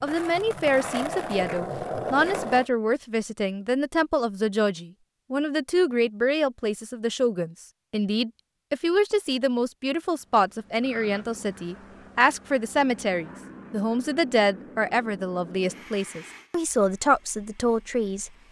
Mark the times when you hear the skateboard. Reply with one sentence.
The skateboard can be heard from 0.0 to 2.7 s.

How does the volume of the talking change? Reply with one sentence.
The volume of the talking stays about the same.